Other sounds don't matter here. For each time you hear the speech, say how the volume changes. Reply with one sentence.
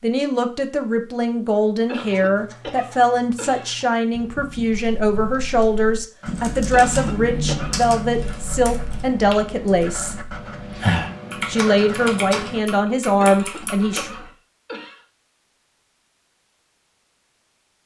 You can hear the speech from 0.0 to 10.2 s, at a steady volume; and briefly from 11.4 to 14.1 s.